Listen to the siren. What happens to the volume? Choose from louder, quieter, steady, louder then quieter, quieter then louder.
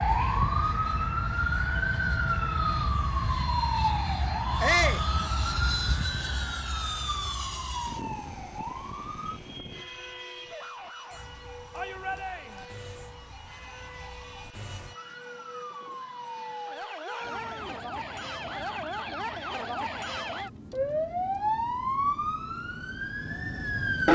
quieter then louder.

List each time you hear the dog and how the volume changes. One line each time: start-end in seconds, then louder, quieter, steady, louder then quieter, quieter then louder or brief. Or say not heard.
not heard.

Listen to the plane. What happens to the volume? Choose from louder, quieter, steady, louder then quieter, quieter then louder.
quieter.